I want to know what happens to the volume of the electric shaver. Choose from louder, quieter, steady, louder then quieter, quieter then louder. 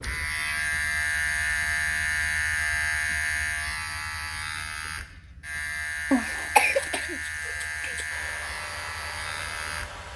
quieter.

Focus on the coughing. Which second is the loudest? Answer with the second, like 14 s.
7 s.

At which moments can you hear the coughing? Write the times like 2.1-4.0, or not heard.
6.1-8.1.